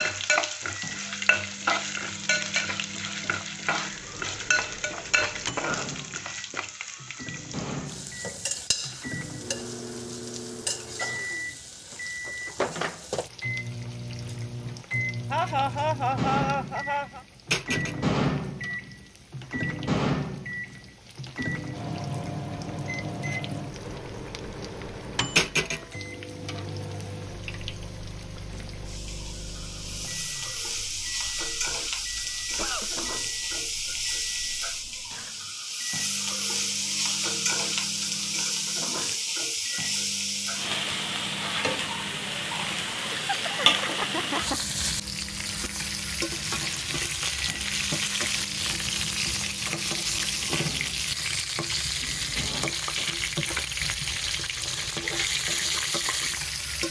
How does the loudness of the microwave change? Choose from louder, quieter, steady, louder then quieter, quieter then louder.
louder then quieter.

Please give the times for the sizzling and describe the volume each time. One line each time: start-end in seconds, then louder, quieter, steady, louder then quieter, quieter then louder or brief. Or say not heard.
0.0-56.8 quieter then louder.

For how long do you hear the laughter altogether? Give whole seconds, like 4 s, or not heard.
4 s.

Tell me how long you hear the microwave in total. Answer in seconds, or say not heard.
53 s.